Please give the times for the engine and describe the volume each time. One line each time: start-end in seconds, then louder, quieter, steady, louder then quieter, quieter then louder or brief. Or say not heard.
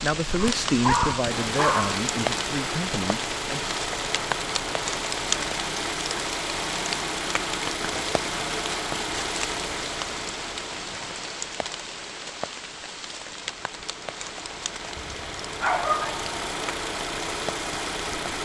0.2-18.4 quieter then louder.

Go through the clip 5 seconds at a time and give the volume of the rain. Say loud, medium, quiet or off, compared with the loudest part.
loud, loud, medium, medium.